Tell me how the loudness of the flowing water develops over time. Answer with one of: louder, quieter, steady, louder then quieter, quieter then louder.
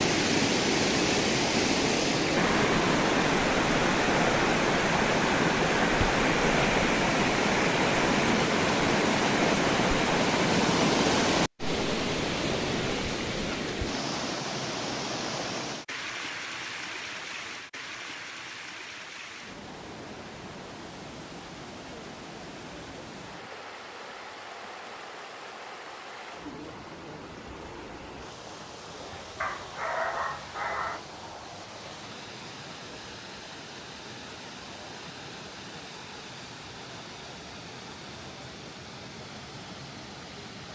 quieter.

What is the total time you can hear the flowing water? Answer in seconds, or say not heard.
41 s.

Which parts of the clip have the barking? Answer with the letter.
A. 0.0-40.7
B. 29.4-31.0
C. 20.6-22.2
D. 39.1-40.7
B.